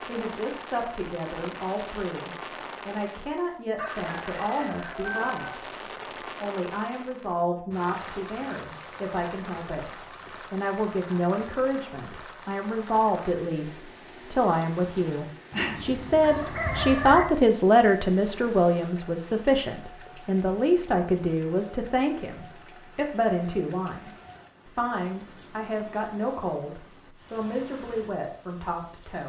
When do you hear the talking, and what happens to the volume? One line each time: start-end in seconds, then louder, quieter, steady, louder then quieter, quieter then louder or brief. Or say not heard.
0.0-5.8 steady
6.4-29.2 louder then quieter.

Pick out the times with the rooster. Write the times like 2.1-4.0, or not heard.
3.8-5.3, 15.5-17.2.